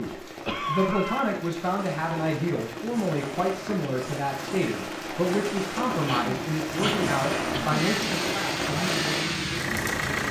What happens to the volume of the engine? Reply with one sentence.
The volume of the engine goes up.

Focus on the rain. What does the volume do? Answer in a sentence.
The loudness of the rain goes up.